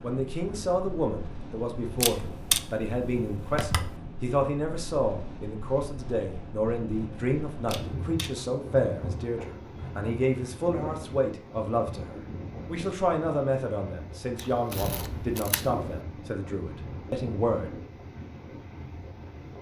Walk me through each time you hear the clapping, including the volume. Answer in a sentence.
The clapping can't be heard in this clip.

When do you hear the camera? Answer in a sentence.
The camera can be heard from 2.0 to 4.0 s, from 7.7 to 8.3 s and from 14.3 to 16.0 s.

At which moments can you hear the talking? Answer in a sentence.
The talking can be heard from 0.0 to 17.7 s.